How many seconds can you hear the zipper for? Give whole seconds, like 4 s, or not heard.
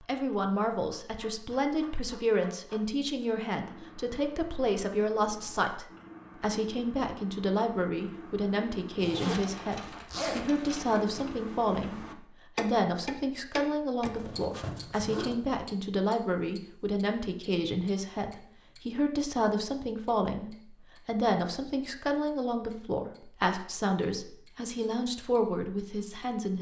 3 s.